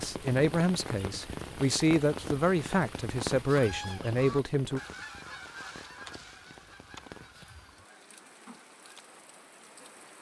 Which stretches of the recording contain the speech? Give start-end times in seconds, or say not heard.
0.0-4.8.